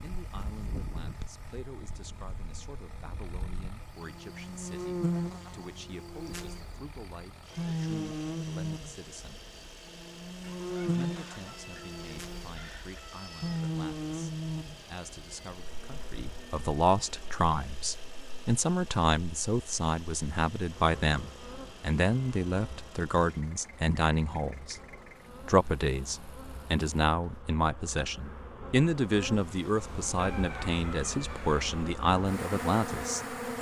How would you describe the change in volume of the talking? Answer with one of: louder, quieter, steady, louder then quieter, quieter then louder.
louder.